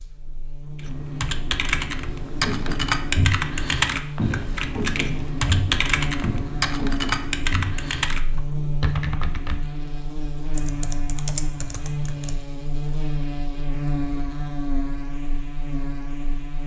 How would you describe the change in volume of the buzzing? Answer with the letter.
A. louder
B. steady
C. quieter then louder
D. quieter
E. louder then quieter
A.